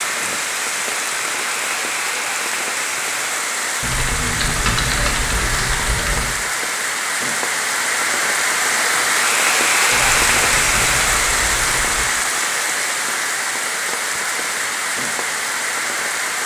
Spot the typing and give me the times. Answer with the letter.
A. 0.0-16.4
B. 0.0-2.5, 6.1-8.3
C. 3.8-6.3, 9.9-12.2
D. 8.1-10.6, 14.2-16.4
C.